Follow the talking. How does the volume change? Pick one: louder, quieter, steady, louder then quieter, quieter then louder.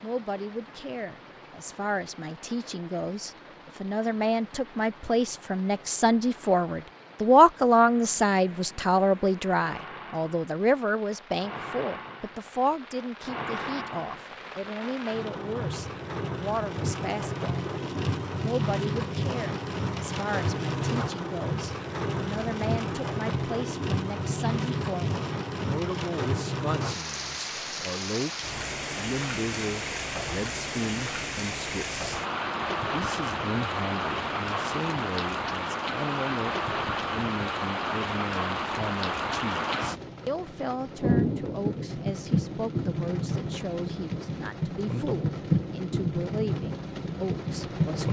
quieter.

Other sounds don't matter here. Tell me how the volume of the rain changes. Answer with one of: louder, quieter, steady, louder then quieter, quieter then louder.
louder.